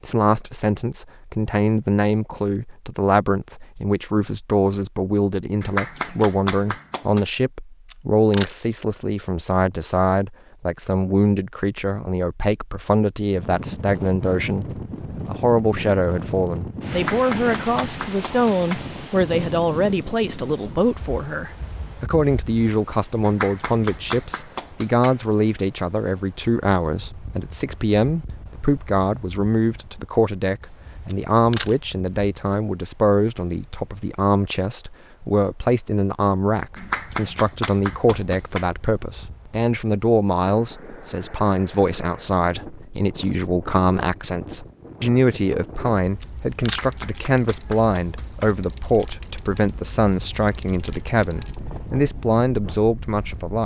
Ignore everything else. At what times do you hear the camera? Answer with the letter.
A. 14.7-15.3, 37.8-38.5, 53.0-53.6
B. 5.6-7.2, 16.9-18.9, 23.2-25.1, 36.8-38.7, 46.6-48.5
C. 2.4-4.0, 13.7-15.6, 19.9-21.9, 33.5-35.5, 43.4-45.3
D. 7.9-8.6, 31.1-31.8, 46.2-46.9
D.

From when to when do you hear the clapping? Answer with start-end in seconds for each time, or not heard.
5.6-7.2, 16.9-18.9, 23.2-25.1, 36.8-38.7, 46.6-48.5.